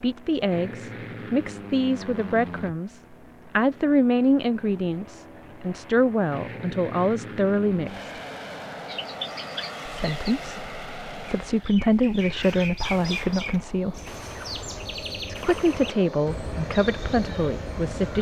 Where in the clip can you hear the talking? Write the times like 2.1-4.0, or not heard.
0.0-8.2, 9.8-14.0, 15.2-18.1.